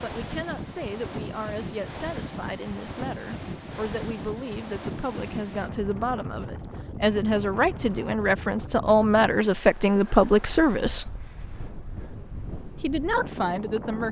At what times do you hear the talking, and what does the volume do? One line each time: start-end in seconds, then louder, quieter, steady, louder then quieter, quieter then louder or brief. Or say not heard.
0.0-11.2 louder
12.8-14.0 brief.